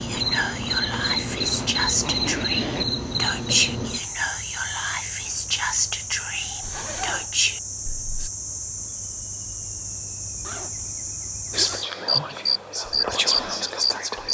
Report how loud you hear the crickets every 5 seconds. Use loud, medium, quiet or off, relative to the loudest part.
loud, medium, loud.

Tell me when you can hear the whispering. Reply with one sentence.
You can hear the whispering from 0.0 to 8.3 s and from 11.5 to 14.2 s.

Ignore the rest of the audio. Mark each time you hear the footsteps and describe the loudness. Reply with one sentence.
The footsteps can't be heard in this clip.